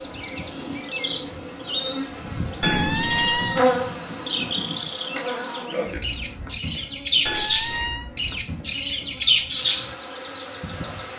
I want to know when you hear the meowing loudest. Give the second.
3 s.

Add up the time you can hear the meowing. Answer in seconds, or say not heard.
2 s.